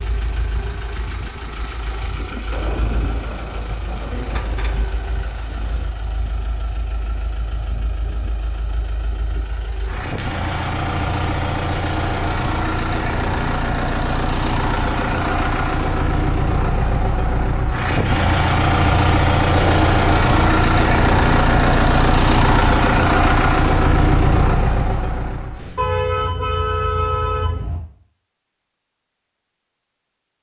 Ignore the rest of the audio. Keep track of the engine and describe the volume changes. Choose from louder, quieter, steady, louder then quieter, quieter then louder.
louder.